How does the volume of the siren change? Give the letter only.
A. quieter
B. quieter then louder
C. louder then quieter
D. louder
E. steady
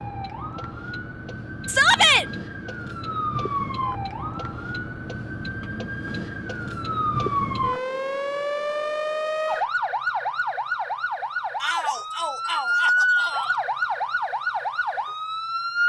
D.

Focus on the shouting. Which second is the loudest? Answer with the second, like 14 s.
2 s.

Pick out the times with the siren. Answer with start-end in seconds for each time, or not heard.
0.0-15.8.